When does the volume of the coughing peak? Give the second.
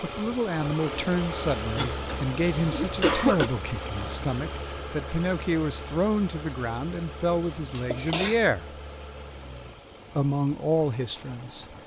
3 s.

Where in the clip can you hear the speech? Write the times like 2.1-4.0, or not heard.
0.0-8.7, 10.2-11.7.